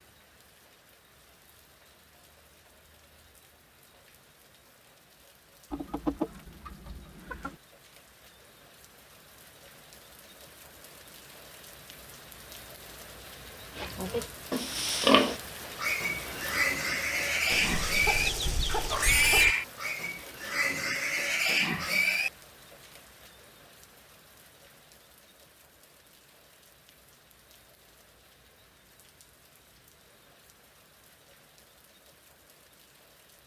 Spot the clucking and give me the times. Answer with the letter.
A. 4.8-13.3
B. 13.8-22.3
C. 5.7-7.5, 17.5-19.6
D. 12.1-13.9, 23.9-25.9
C.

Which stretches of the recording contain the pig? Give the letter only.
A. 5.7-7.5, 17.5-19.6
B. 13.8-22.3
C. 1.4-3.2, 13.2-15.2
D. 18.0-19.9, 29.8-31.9
B.